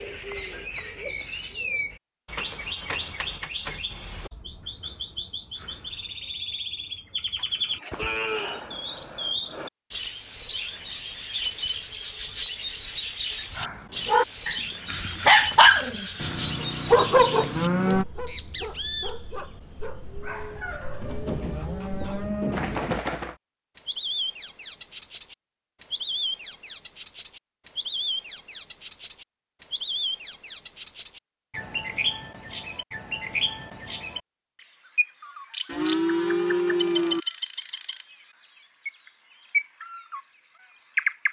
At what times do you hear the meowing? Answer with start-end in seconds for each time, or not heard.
not heard.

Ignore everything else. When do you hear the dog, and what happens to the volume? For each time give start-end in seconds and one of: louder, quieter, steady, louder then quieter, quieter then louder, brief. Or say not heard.
13.6-22.2 quieter.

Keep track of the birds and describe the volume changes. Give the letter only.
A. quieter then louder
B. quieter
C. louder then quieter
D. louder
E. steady
E.